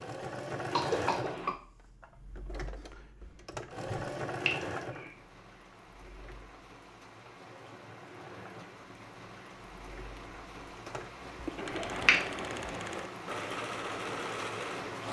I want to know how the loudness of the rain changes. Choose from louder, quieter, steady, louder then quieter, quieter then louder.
louder.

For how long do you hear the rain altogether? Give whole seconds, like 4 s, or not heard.
10 s.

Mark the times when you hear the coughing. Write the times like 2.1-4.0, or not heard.
0.7-1.6.